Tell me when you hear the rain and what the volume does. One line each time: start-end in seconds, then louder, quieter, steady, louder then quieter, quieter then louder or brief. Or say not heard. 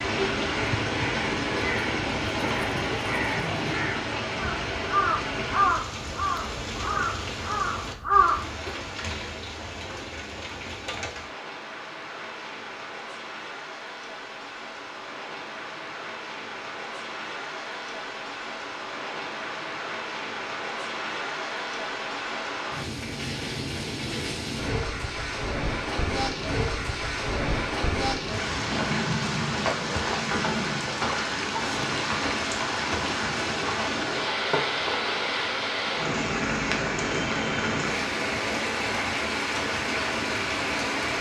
0.0-41.1 quieter then louder.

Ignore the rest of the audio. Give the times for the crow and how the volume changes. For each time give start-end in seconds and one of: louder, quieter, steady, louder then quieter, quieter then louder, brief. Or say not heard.
0.6-8.8 louder.